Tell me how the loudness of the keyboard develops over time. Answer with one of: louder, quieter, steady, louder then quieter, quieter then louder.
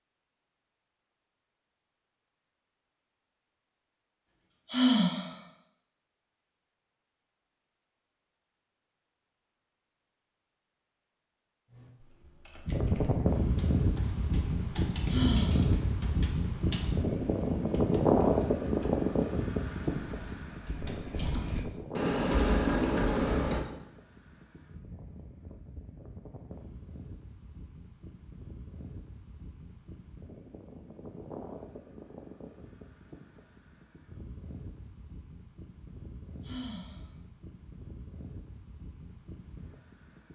louder.